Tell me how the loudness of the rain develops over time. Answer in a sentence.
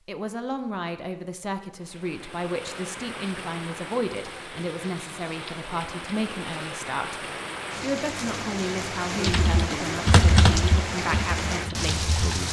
The volume of the rain goes up.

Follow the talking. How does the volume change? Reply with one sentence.
The volume of the talking stays about the same.